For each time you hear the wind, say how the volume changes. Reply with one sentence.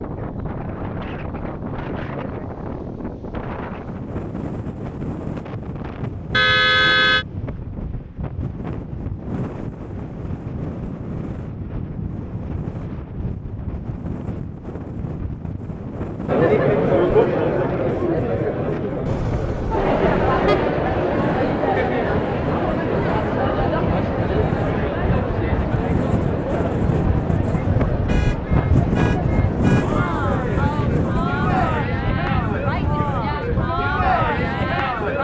You can hear the wind from 0.0 to 35.2 s, getting louder.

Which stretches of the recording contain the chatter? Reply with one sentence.
You can hear the chatter from 16.2 to 35.2 s.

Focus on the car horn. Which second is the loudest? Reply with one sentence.
The volume of the car horn peaks at 7 seconds.